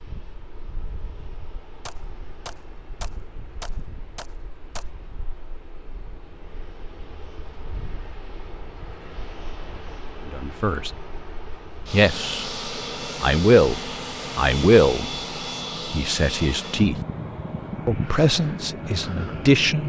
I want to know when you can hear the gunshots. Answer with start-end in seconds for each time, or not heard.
1.9-4.9.